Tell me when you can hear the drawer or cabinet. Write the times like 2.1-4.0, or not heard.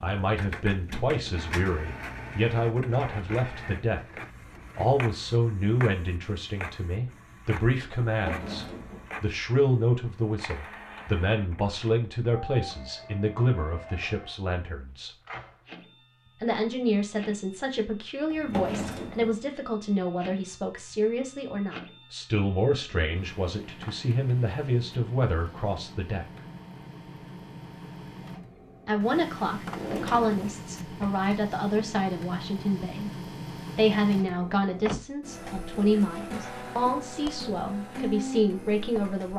8.1-9.1, 18.3-19.4, 29.6-31.1.